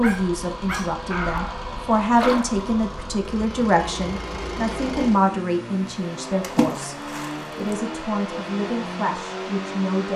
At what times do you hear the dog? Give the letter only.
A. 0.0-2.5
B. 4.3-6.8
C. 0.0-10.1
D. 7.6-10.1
A.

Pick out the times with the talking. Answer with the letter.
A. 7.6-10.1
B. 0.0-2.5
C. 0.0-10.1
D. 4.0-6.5
C.